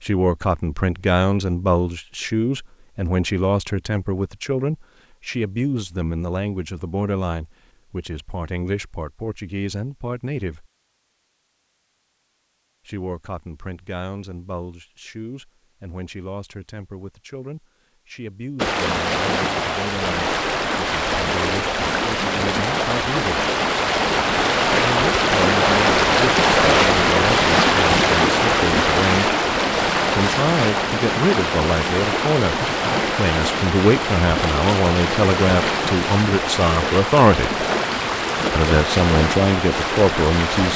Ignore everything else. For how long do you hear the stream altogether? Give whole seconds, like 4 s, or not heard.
22 s.